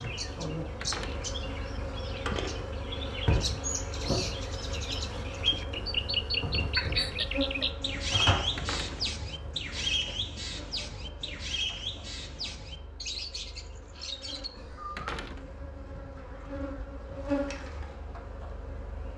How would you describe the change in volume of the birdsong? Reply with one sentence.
The loudness of the birdsong goes up, then down.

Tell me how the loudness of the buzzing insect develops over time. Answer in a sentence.
The loudness of the buzzing insect goes down, then up.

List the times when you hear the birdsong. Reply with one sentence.
You can hear the birdsong from 0.0 to 15.2 s.